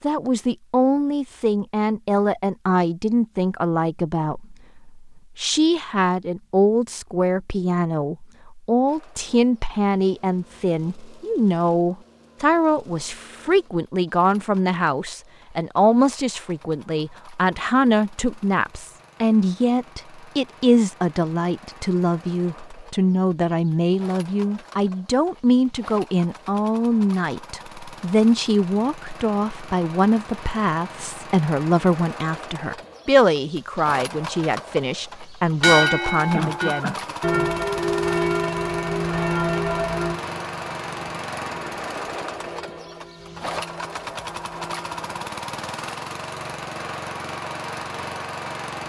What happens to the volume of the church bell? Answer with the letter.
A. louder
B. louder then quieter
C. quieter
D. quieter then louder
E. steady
C.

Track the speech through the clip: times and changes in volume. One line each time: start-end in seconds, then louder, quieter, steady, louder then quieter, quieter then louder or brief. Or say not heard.
0.0-37.5 steady.